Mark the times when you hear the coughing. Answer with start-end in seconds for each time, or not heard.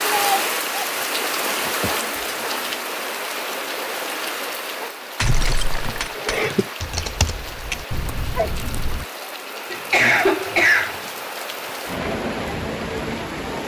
1.4-2.5, 5.2-6.7, 9.7-11.0.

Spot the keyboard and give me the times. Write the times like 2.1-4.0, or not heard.
6.8-9.1.